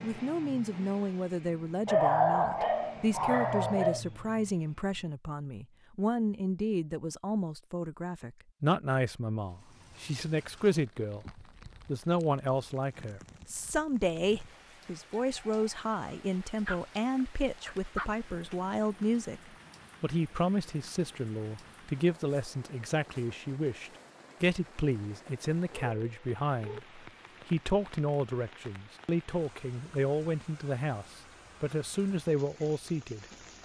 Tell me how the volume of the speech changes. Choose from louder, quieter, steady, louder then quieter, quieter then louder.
steady.